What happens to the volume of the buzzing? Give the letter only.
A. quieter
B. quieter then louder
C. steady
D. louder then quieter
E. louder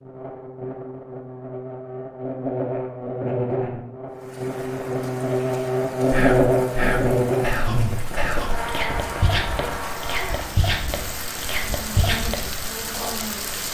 D.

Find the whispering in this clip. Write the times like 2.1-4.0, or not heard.
6.1-13.2.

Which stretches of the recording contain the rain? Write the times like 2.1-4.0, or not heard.
4.1-13.6.